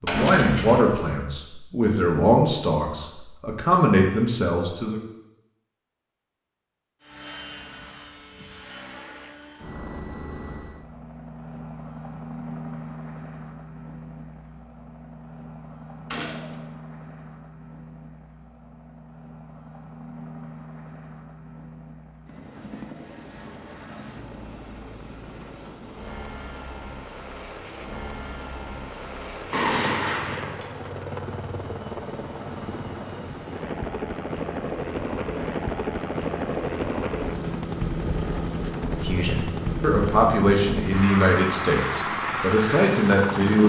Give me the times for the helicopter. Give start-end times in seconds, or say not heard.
7.0-43.6.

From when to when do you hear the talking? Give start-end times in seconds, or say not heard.
0.0-5.0, 38.9-43.6.